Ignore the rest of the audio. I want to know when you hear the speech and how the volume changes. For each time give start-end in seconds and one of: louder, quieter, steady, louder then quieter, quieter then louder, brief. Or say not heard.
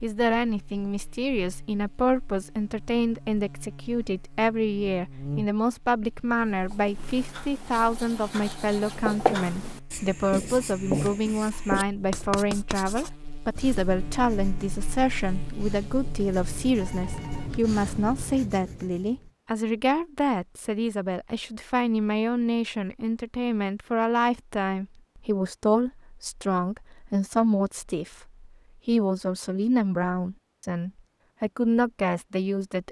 0.0-32.8 steady.